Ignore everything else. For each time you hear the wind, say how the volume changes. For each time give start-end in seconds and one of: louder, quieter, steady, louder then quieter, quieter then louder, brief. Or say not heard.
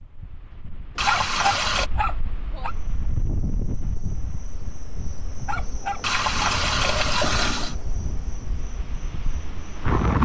0.0-10.2 louder then quieter.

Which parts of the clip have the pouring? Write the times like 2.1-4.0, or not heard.
0.9-1.9, 6.0-7.8.